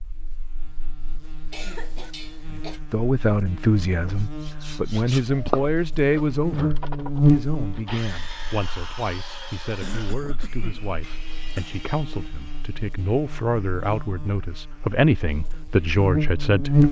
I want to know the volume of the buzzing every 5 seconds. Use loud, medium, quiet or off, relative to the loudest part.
quiet, loud, quiet, loud.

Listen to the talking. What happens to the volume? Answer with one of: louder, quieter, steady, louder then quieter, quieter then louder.
quieter then louder.